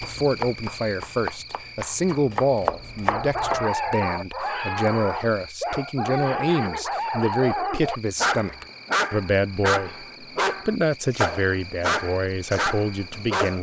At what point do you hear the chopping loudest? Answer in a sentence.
The loudest moment of the chopping is at 3 seconds.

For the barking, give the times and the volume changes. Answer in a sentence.
You can hear the barking from 3.0 to 13.5 s, at a steady volume.